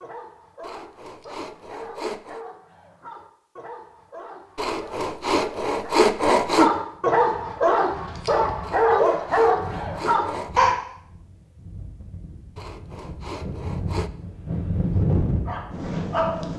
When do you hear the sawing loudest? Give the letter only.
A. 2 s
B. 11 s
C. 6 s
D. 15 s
C.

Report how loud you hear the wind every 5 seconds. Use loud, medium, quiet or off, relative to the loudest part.
off, quiet, medium, loud.